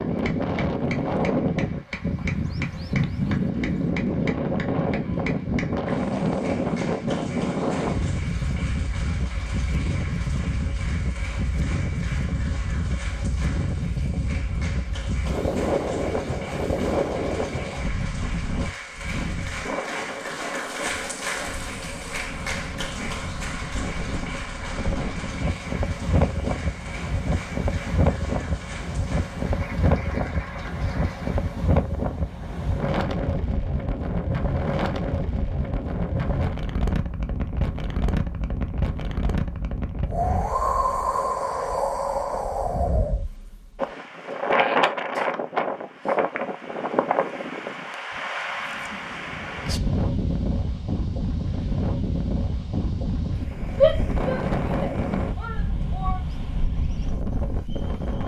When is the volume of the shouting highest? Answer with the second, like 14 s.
54 s.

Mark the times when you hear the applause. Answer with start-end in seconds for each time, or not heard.
0.0-31.5.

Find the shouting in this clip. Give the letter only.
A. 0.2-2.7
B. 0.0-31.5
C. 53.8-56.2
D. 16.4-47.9
C.